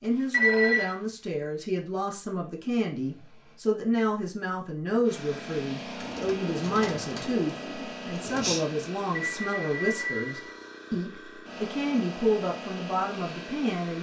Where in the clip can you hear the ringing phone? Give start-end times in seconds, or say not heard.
0.3-0.9, 9.1-10.8.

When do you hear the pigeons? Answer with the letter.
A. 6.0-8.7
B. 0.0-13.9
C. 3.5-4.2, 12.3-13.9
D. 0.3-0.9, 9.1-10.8
A.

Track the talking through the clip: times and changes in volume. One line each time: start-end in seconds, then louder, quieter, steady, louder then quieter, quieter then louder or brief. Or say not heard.
0.0-13.9 steady.